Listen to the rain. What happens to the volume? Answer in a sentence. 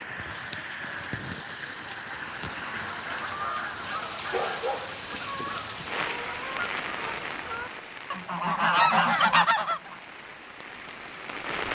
The volume of the rain goes down.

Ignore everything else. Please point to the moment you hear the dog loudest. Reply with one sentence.
The volume of the dog peaks at 5 seconds.